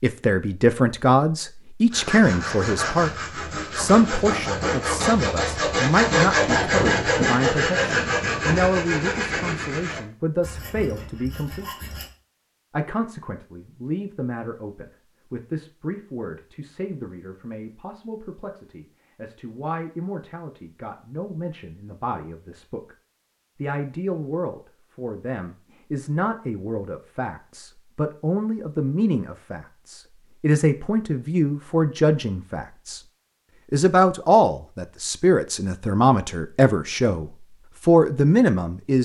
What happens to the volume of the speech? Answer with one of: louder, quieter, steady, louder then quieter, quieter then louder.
quieter then louder.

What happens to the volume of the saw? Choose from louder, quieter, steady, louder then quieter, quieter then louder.
louder then quieter.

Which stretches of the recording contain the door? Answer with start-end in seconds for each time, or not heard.
not heard.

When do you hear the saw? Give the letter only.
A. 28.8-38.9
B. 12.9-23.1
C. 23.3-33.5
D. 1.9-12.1
D.